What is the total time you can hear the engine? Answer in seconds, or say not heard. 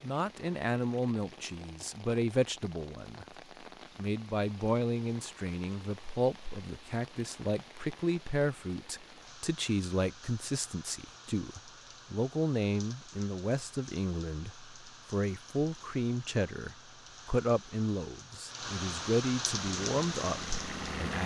2 s.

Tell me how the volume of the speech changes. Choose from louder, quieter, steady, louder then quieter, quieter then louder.
steady.